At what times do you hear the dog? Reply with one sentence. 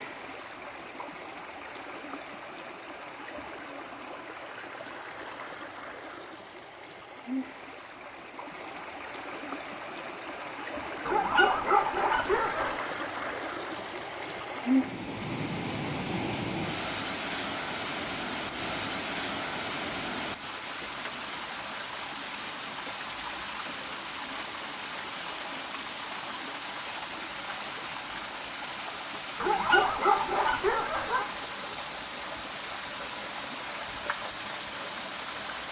The dog can be heard from 11.1 to 12.8 s and from 29.4 to 31.2 s.